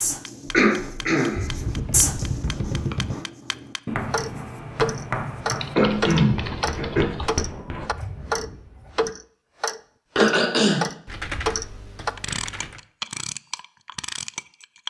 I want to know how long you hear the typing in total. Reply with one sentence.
You can hear the typing for 5 seconds altogether.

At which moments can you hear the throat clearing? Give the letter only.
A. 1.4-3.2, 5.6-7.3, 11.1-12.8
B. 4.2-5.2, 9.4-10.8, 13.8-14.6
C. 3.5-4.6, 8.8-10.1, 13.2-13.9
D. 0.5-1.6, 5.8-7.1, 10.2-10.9
D.